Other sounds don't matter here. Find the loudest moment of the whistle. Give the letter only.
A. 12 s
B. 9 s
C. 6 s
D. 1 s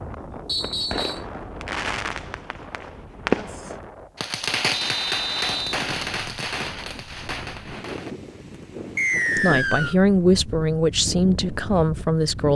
B.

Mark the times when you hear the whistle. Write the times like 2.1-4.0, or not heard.
0.5-1.2, 4.7-5.8, 8.9-9.9.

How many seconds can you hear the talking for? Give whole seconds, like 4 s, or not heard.
3 s.